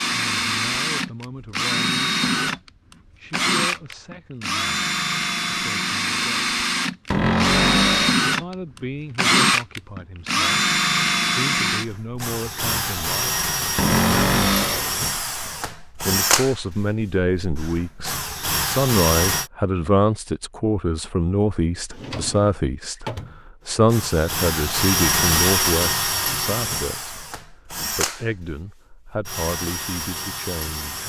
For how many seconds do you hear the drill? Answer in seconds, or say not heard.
27 s.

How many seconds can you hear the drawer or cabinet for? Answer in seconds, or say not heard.
4 s.